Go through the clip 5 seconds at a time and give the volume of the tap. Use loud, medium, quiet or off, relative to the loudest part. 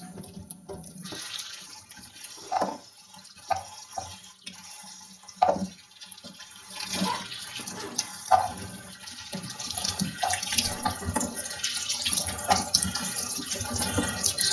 medium, loud, loud.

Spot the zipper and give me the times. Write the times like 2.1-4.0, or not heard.
1.1-2.6, 6.8-8.1, 10.5-10.9.